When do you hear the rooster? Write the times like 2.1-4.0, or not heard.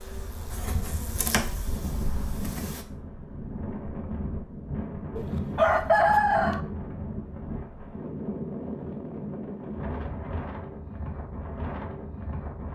5.2-6.6.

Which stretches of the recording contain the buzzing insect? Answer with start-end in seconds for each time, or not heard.
0.0-2.9.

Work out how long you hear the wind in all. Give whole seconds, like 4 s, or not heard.
13 s.